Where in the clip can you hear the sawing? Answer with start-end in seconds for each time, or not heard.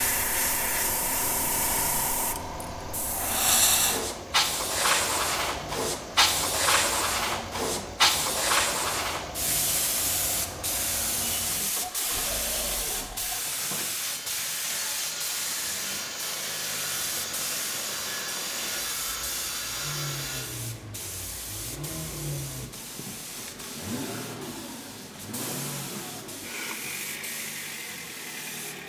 14.0-20.4.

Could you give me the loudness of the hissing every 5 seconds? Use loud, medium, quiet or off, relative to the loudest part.
loud, loud, medium, medium, quiet, quiet.